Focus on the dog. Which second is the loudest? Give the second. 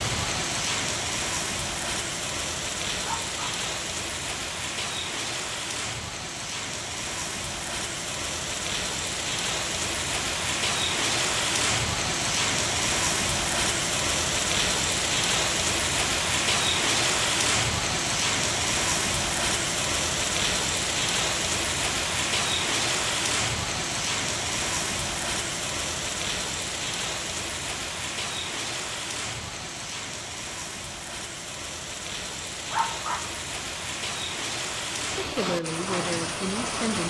33 s.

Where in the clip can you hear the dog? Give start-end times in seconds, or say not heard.
3.0-3.5, 32.7-33.2.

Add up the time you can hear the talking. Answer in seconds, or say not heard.
2 s.